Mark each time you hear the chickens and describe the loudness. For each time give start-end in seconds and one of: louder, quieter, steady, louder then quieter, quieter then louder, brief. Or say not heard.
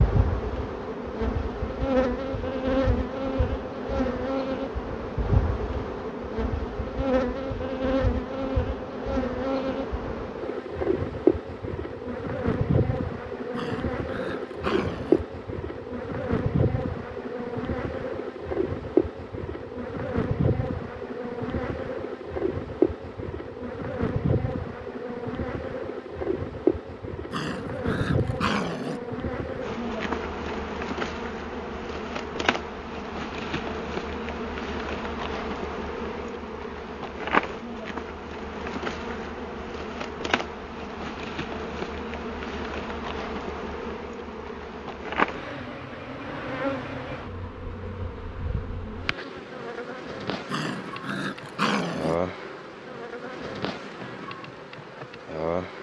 not heard.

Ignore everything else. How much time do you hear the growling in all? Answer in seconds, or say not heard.
5 s.